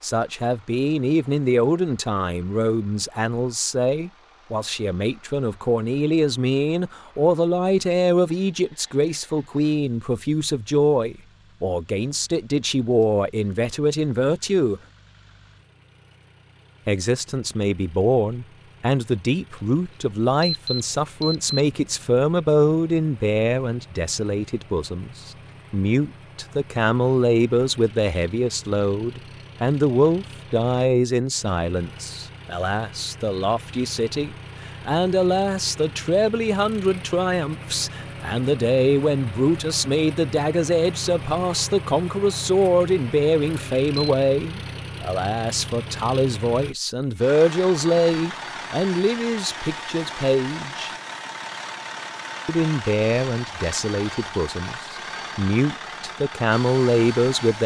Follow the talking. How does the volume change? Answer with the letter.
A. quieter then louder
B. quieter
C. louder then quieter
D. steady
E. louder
D.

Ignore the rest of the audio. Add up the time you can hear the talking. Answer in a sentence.
You can hear the talking for 54 seconds altogether.